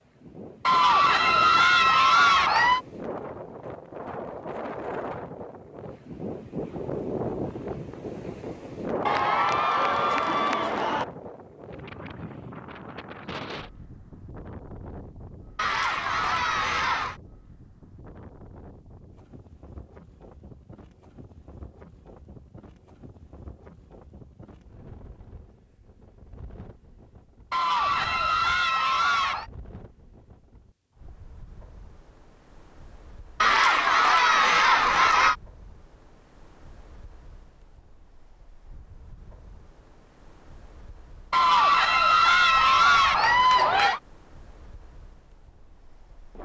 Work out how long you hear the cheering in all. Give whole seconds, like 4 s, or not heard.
12 s.